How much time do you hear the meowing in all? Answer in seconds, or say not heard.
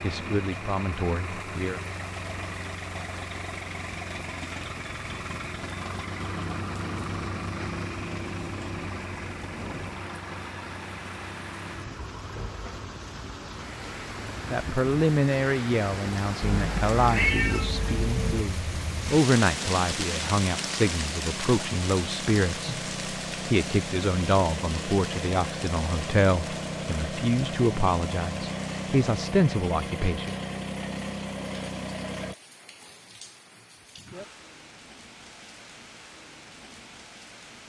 2 s.